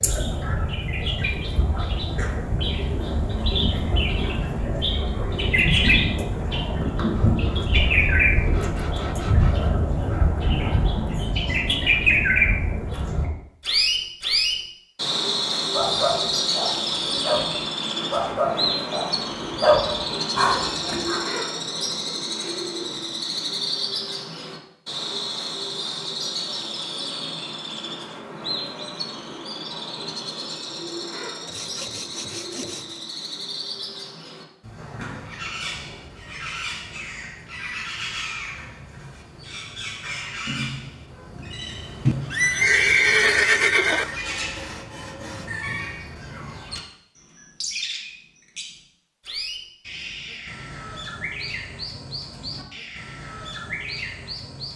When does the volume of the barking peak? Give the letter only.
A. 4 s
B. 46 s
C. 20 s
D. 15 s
C.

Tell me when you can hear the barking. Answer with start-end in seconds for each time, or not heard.
15.7-21.2.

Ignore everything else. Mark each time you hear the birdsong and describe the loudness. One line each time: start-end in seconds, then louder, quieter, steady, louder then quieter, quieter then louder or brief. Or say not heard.
0.0-54.7 quieter.